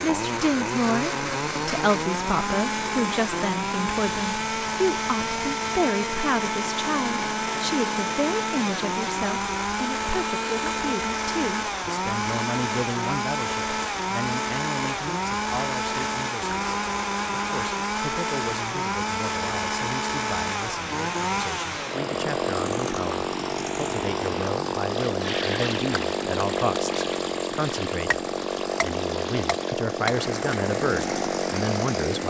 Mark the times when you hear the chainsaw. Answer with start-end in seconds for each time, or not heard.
0.0-32.2.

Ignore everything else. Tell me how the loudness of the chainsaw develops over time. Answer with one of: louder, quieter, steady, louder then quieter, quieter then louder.
steady.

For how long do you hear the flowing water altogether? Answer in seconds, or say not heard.
32 s.